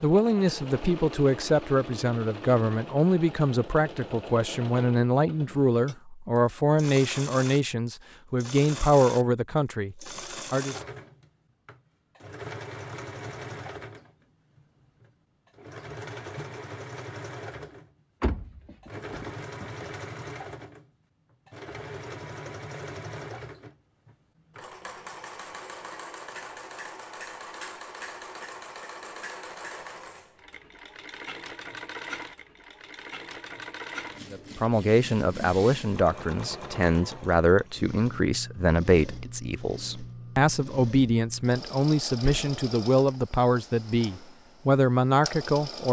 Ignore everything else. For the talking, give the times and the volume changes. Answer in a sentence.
You can hear the talking from 0.0 to 10.8 s, at a steady volume; and from 34.3 to 45.8 s, at a steady volume.